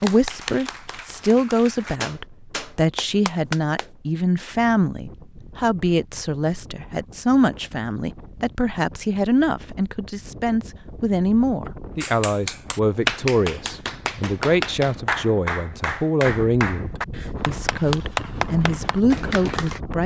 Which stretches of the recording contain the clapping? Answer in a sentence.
The clapping can be heard from 0.0 to 3.9 s and from 12.0 to 19.8 s.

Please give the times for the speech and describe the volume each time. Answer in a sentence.
You can hear the speech from 0.0 to 20.0 s, at a steady volume.